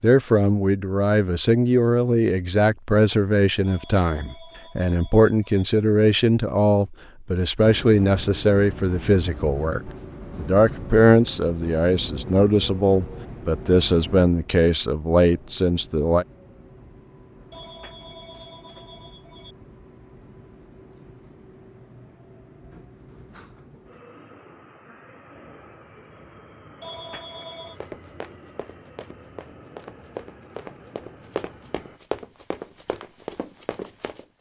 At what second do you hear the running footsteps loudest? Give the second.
32 s.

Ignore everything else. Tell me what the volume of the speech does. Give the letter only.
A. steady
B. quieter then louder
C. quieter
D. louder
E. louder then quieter
A.